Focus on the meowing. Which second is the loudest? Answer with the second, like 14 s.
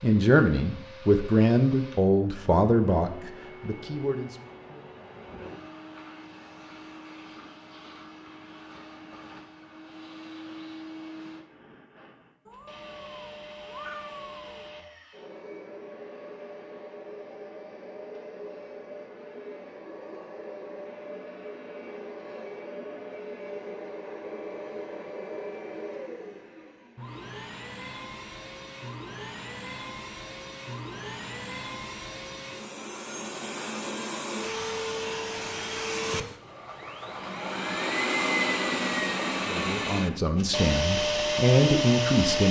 14 s.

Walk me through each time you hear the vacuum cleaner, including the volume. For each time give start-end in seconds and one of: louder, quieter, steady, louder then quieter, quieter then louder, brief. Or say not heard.
0.0-42.4 louder.